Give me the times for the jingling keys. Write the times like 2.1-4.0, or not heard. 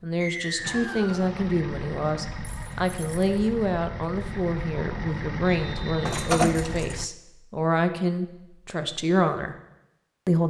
2.4-3.4, 6.0-7.0.